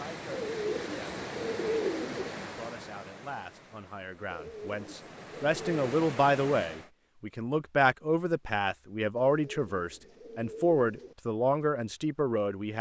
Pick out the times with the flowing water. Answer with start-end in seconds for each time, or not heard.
0.0-6.9.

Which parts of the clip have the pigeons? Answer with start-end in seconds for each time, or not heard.
0.3-2.3, 4.2-5.8, 9.2-11.2.